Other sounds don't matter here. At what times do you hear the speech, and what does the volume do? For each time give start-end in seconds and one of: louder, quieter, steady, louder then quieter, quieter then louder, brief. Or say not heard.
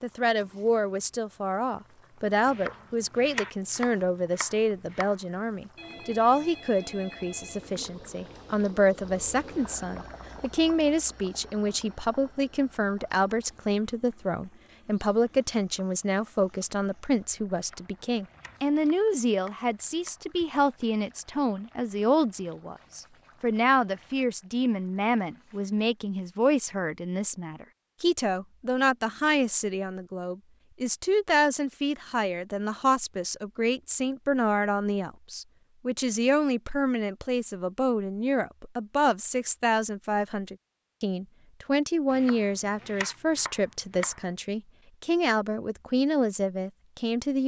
0.0-47.4 steady.